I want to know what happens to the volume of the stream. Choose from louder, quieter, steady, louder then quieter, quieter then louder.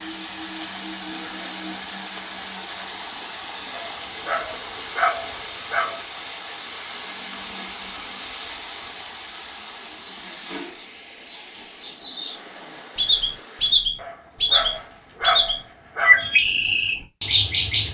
quieter.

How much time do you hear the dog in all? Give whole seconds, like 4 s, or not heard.
5 s.